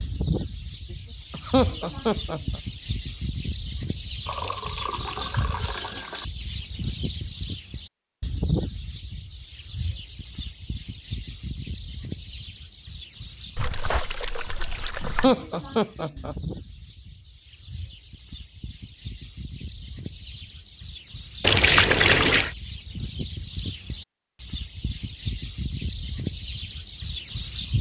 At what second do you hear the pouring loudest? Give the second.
22 s.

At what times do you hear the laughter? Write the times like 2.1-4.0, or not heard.
1.3-2.6, 15.0-16.4.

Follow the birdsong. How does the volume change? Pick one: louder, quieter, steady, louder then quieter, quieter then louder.
quieter then louder.